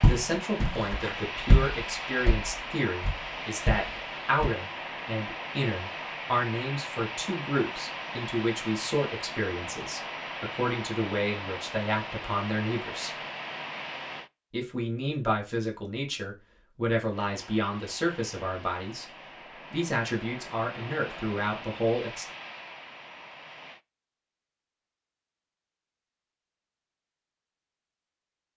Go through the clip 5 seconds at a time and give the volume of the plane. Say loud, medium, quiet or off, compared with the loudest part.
loud, loud, loud, medium, medium, off.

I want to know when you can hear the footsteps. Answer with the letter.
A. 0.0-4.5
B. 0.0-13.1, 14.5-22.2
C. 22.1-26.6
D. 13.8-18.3
A.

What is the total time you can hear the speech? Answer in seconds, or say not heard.
21 s.